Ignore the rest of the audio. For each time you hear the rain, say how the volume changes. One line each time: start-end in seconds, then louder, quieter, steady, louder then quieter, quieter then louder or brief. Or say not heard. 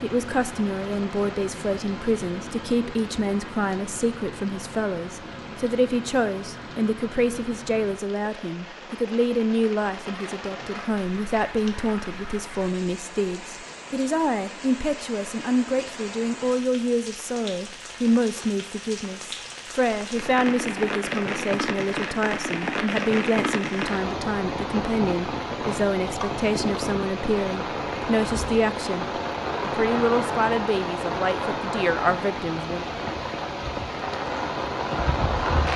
0.0-35.7 louder.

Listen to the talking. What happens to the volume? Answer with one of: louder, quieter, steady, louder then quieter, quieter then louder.
steady.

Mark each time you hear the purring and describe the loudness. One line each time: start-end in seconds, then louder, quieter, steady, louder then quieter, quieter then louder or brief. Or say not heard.
not heard.